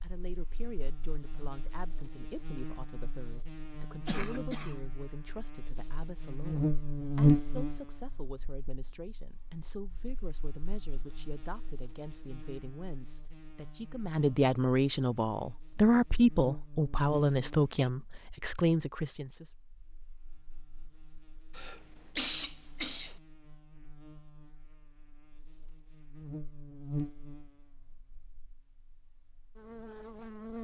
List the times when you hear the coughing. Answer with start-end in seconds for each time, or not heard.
4.0-4.9, 17.1-17.9, 21.5-23.2.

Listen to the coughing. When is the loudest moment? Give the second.
22 s.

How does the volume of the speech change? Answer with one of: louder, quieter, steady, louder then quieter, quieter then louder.
louder.